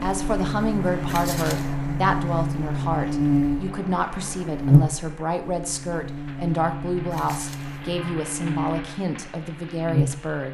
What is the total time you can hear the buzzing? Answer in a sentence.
The buzzing can be heard for 10 seconds in total.